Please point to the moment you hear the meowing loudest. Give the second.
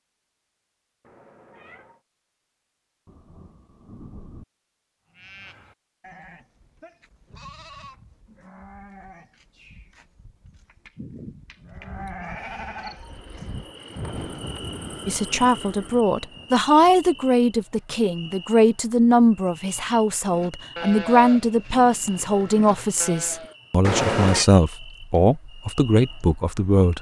24 s.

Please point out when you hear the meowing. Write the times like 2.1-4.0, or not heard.
1.0-2.0, 12.2-13.6, 23.8-24.5.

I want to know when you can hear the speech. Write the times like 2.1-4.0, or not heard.
15.1-26.9.